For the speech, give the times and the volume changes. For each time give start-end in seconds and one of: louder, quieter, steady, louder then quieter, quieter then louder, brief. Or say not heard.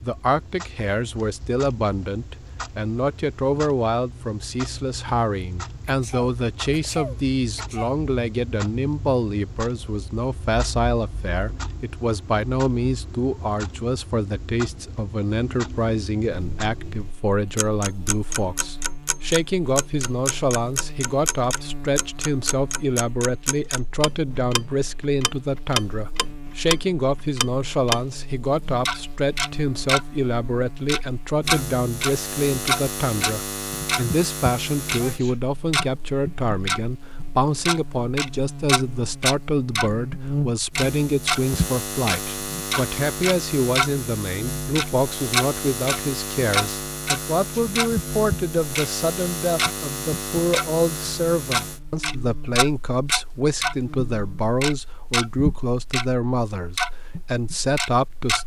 0.0-58.4 steady.